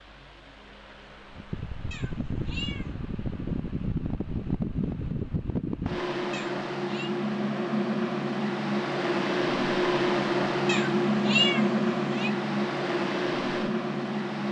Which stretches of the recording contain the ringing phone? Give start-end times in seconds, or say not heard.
not heard.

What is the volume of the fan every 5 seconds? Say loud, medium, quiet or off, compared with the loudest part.
medium, loud, loud.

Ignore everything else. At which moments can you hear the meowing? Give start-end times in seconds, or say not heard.
1.9-2.9, 6.3-7.2, 10.7-12.3.